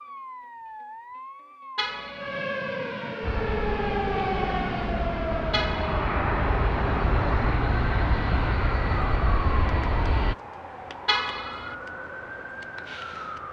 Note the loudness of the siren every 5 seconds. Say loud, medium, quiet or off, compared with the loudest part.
loud, loud, medium.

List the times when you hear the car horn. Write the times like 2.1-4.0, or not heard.
1.8-2.5, 5.5-6.2, 11.1-11.8.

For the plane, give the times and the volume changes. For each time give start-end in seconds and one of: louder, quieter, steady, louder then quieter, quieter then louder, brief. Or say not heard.
3.2-10.3 louder.